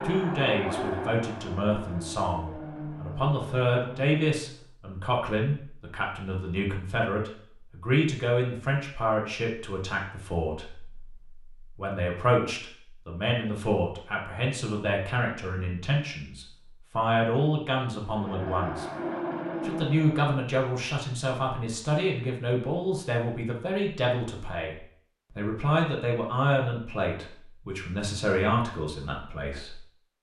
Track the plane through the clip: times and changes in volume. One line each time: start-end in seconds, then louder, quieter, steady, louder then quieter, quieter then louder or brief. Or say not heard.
0.0-4.7 quieter
18.0-20.2 brief.